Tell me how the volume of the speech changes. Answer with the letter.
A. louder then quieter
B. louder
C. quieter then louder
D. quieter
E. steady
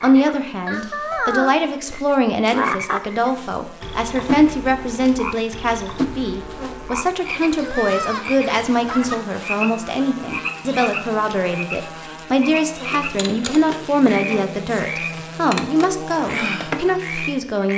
E.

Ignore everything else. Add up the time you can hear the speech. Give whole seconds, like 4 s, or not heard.
18 s.